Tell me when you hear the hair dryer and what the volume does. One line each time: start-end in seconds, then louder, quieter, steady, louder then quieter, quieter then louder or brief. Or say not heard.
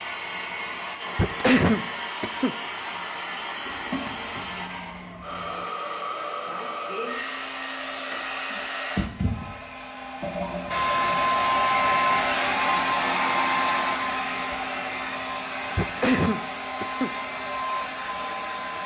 0.0-18.8 louder then quieter.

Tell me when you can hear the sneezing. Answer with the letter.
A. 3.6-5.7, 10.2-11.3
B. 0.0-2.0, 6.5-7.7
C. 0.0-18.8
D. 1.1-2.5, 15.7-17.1
D.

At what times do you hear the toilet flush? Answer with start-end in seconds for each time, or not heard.
3.6-5.7, 10.2-11.3.